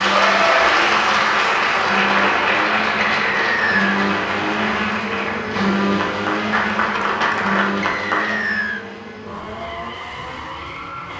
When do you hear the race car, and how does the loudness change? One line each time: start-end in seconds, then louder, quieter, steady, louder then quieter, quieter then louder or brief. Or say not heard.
0.0-11.1 louder then quieter.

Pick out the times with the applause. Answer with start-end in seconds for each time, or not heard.
0.0-8.3.